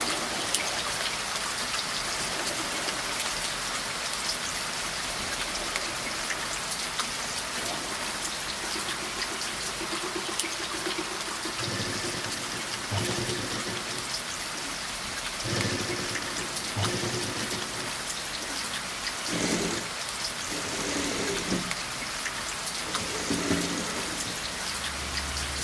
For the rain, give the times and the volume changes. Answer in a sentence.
You can hear the rain from 0.0 to 25.6 s, at a steady volume.